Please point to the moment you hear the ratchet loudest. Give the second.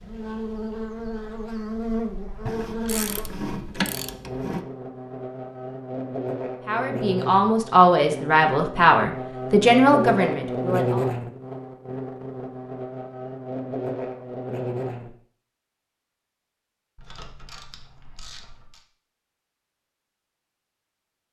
4 s.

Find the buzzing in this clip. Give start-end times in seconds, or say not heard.
0.0-15.2.